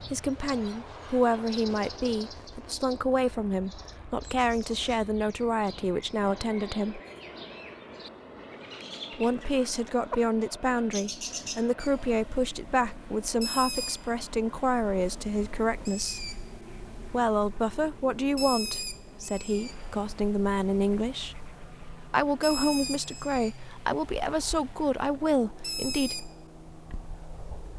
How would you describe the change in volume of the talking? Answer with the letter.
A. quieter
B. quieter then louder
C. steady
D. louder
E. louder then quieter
C.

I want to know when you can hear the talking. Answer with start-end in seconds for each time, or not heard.
0.0-7.0, 9.2-16.2, 17.1-21.4, 22.1-26.3.